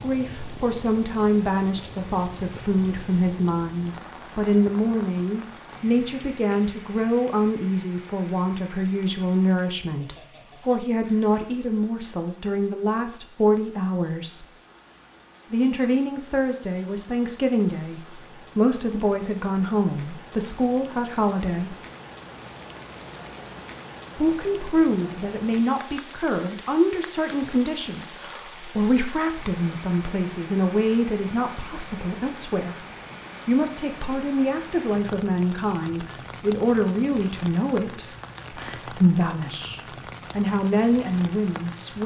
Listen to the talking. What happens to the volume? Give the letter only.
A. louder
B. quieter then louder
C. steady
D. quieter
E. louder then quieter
C.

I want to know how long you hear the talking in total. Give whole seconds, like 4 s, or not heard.
38 s.